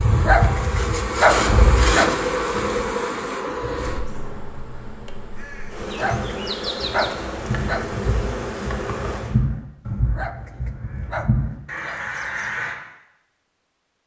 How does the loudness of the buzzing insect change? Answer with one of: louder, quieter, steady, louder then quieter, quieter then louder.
quieter then louder.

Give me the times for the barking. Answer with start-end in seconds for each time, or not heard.
0.1-2.1, 5.9-7.8, 10.1-12.0.